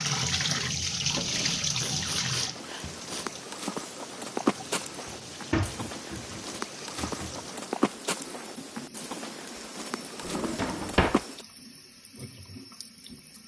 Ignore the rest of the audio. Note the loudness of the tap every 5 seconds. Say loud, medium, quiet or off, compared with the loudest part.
loud, quiet, quiet.